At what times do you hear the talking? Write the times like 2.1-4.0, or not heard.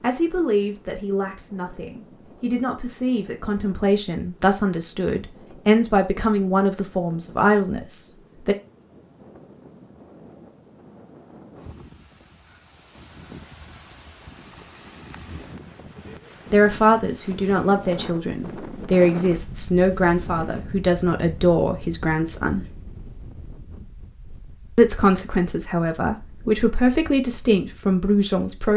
0.0-8.6, 16.5-22.6, 24.8-28.7.